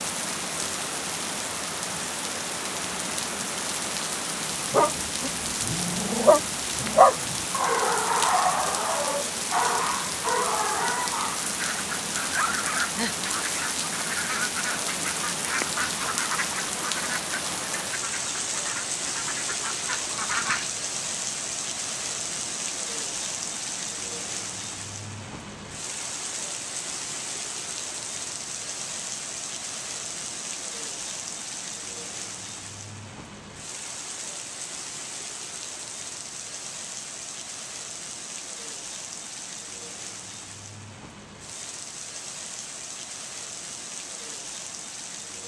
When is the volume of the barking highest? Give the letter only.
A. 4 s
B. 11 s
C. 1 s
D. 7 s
D.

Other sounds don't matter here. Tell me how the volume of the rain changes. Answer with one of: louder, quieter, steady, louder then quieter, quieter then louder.
quieter.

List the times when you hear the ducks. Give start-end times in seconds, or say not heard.
11.4-20.7.